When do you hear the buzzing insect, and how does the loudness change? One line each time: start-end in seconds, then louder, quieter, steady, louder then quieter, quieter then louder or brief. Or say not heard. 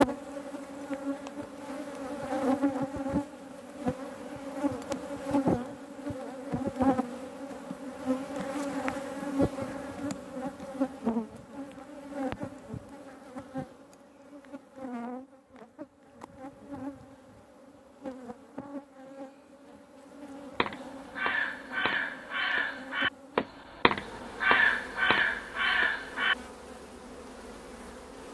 0.0-28.2 quieter.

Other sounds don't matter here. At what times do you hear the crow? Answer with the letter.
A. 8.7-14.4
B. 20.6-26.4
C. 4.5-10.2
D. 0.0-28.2
B.